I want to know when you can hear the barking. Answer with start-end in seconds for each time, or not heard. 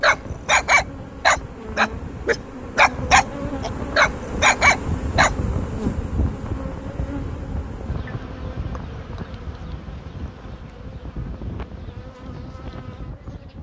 0.0-5.3.